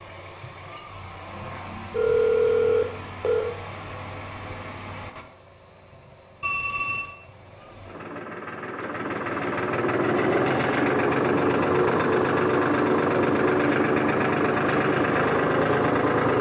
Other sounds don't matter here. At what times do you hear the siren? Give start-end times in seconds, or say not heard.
not heard.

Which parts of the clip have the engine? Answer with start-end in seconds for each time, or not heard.
0.0-16.3.